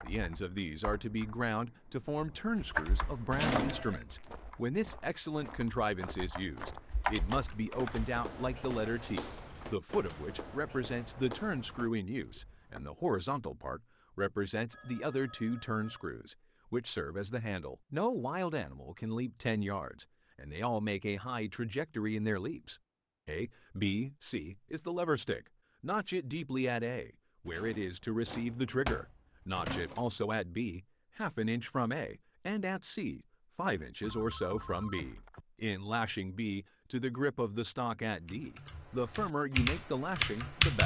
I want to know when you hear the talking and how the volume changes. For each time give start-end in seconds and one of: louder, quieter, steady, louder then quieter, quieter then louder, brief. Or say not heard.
0.0-40.8 steady.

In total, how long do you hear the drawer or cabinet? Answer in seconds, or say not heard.
3 s.